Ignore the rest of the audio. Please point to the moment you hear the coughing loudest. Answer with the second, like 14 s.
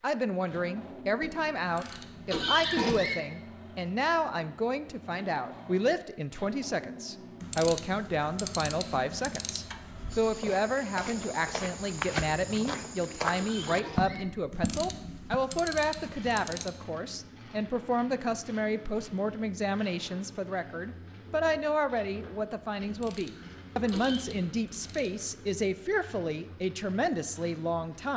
3 s.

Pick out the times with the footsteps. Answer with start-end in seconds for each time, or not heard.
10.1-15.3.